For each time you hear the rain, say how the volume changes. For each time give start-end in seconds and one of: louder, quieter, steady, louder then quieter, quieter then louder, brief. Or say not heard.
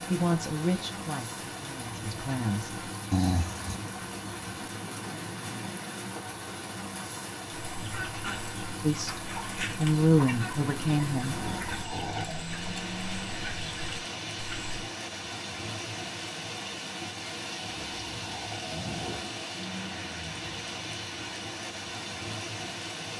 0.0-23.1 steady.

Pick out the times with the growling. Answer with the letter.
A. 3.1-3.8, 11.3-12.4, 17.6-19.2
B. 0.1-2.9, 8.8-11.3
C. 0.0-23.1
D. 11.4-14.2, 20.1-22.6
A.